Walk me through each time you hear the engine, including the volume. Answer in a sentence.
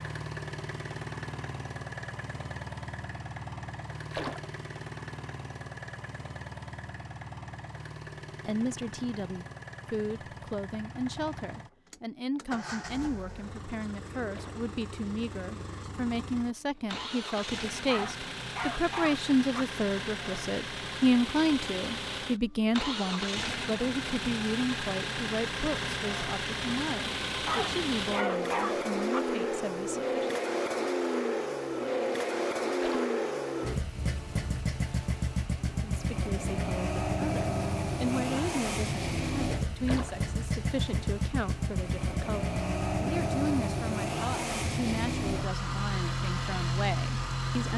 You can hear the engine from 0.0 to 47.7 s, getting louder.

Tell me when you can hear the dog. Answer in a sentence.
You can hear the dog from 17.9 to 19.6 s and from 27.4 to 29.2 s.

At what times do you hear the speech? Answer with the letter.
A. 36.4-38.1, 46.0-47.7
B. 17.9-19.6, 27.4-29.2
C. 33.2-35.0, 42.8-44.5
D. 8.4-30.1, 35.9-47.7
D.